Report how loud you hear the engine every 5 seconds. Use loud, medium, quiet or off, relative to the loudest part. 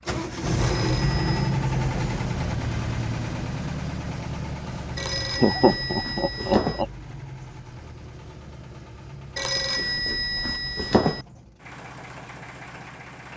loud, quiet, quiet.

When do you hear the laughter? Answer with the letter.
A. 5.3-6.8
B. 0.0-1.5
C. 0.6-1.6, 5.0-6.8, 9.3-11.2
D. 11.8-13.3
A.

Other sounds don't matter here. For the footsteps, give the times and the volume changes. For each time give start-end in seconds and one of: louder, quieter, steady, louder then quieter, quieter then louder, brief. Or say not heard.
not heard.